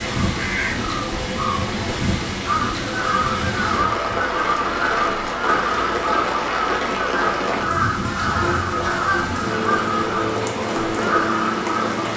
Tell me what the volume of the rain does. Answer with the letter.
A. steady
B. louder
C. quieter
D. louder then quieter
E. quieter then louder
A.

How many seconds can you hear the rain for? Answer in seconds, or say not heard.
12 s.